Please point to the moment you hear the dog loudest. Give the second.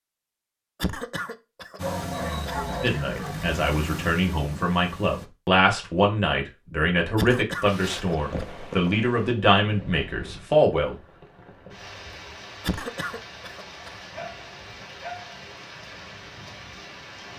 3 s.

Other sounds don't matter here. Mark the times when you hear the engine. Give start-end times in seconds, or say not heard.
1.8-5.3.